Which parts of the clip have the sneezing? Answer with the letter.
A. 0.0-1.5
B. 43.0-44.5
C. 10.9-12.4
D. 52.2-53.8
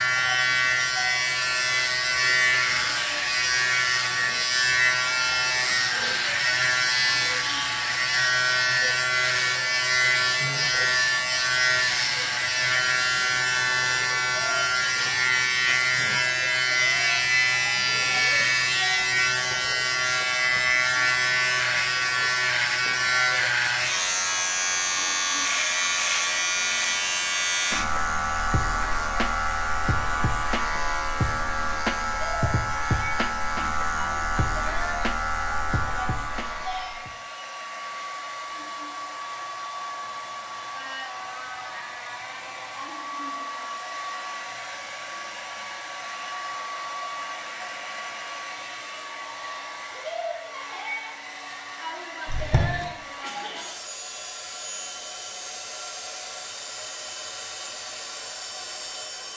D.